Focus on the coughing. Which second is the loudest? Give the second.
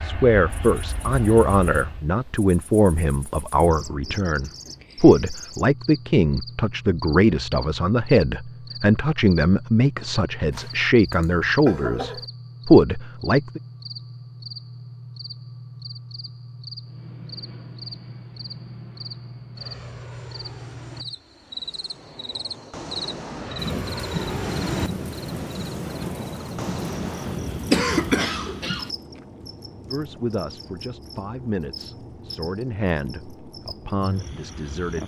28 s.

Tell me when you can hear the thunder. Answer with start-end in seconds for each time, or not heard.
3.9-5.2, 23.6-28.2.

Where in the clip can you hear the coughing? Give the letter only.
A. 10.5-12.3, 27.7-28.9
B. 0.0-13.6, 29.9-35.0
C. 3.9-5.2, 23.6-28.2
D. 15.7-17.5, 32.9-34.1
A.